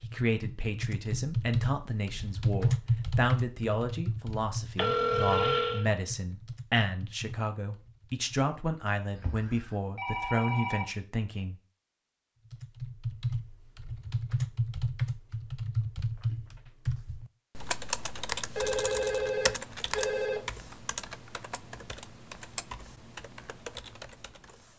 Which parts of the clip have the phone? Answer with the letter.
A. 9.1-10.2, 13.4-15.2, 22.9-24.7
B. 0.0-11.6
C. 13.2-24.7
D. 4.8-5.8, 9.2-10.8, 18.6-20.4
D.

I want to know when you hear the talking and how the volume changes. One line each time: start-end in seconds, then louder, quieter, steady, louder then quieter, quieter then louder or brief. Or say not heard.
0.0-11.6 steady.